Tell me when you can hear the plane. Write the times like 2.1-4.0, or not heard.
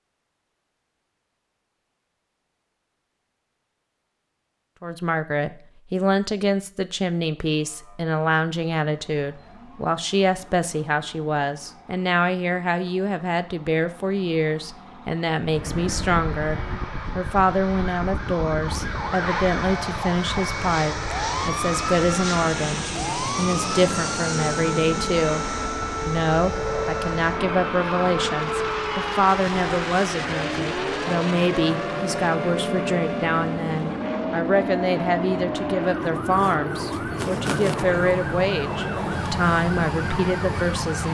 15.4-41.0.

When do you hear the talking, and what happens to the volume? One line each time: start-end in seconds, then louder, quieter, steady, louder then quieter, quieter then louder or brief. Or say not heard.
4.8-41.0 steady.